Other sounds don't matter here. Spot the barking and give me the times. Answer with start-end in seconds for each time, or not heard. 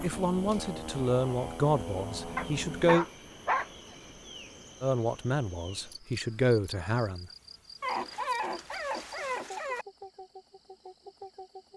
2.4-3.6, 7.8-9.8.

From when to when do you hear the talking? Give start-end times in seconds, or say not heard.
0.0-3.0, 4.8-7.3.